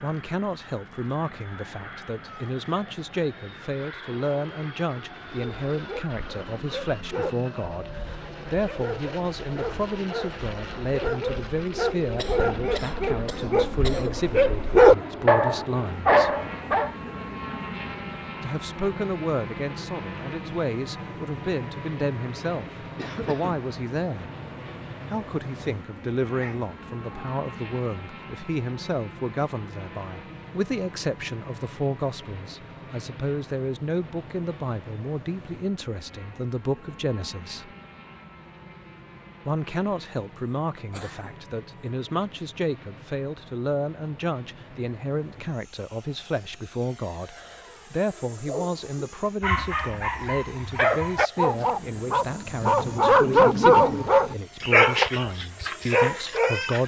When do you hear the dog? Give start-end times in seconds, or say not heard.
5.3-16.9, 48.5-56.8.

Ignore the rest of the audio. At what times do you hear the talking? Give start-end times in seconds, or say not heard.
0.0-16.4, 18.4-24.3, 25.1-37.7, 39.5-56.8.